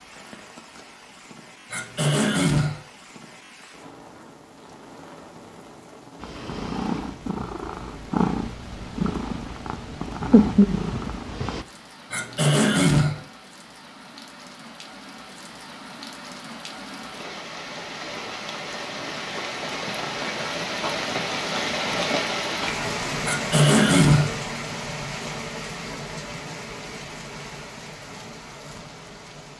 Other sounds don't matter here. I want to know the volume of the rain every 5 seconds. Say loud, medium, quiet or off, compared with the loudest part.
quiet, quiet, quiet, medium, loud, medium.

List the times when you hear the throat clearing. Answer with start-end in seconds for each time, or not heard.
1.7-2.8, 12.1-13.2, 23.2-24.4.